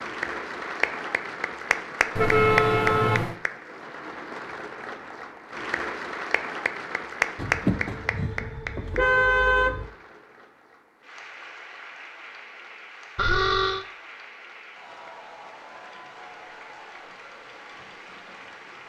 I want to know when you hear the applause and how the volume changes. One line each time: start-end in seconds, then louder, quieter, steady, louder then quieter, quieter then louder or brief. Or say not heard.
0.0-18.8 quieter.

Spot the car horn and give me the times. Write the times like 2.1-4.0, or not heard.
2.1-3.4, 7.3-9.9, 13.2-13.8.